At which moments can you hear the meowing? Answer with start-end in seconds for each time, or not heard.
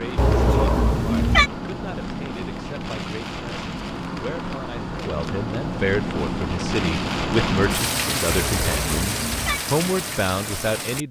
0.1-1.5, 8.2-9.6.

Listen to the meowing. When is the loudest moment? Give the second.
1 s.